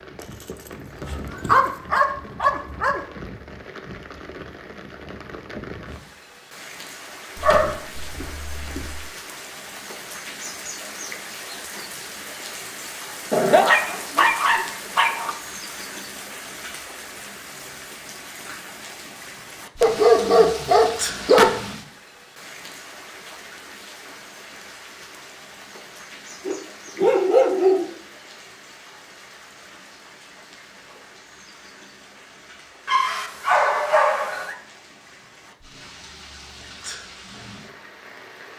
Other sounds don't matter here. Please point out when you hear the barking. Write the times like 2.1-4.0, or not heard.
1.0-3.0, 7.3-9.0, 13.3-15.3, 19.8-21.6, 26.4-27.9, 32.9-34.5.